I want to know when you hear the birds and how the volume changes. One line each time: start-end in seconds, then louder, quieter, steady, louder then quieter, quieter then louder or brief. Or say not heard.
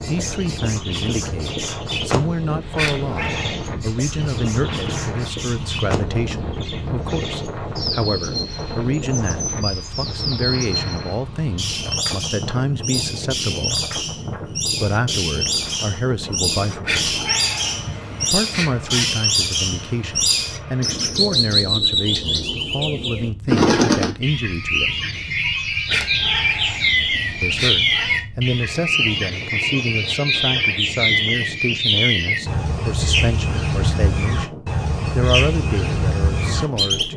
0.0-37.1 louder.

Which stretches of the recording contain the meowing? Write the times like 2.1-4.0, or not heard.
2.8-3.5, 16.8-19.1, 25.9-28.2.